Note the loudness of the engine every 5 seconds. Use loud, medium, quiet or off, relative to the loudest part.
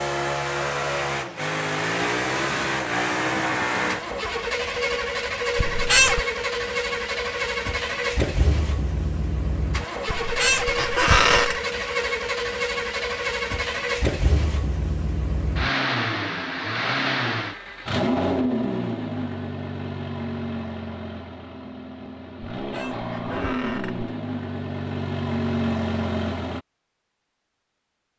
loud, loud, loud, loud, medium, loud.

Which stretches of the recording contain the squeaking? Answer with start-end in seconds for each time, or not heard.
5.5-6.2, 10.1-11.6, 22.6-24.1.